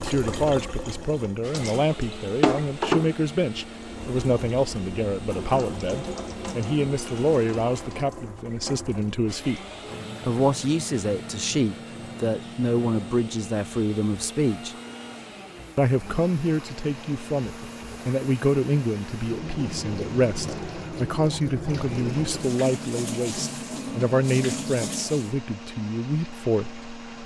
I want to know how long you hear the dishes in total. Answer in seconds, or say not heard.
not heard.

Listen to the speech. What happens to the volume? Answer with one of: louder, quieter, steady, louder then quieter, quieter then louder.
steady.